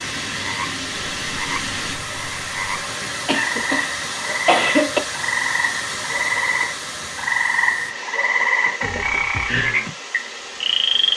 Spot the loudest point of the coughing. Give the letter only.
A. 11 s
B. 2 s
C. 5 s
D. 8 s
C.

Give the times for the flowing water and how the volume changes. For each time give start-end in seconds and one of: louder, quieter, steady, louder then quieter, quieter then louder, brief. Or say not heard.
0.0-11.1 quieter.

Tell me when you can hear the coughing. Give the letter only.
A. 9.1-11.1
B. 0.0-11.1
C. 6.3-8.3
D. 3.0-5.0
D.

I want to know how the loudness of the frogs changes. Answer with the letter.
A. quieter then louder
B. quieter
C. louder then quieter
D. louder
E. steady
D.